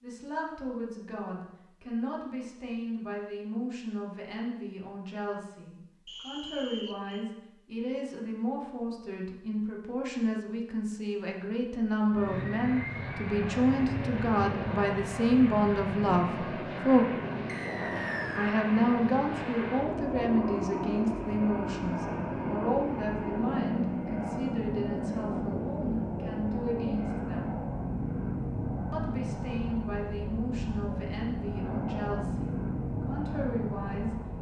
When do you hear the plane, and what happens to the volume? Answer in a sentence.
You can hear the plane from 12.1 to 34.3 s, at a steady volume.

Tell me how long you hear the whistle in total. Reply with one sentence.
The whistle can be heard for 2 seconds in total.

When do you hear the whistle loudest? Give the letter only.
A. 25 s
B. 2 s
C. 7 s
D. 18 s
D.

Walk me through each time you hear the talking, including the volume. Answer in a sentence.
The talking can be heard from 0.0 to 17.1 s, getting louder; from 18.4 to 27.6 s, getting quieter; and from 28.9 to 34.1 s, at a steady volume.